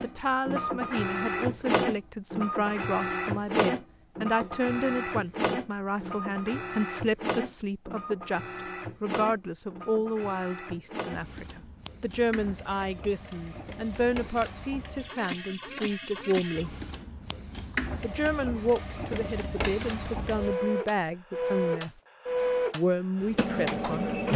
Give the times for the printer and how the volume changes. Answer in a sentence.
You can hear the printer from 0.0 to 24.3 s, getting quieter then louder.